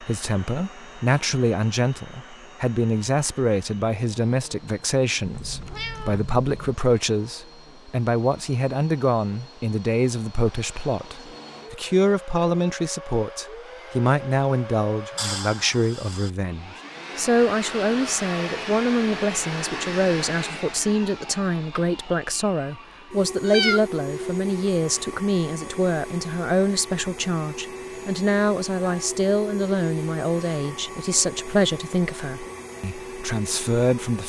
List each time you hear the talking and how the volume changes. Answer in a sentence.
You can hear the talking from 0.0 to 34.2 s, at a steady volume.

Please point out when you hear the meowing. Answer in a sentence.
You can hear the meowing from 5.2 to 6.8 s, from 15.2 to 16.3 s and from 23.4 to 23.9 s.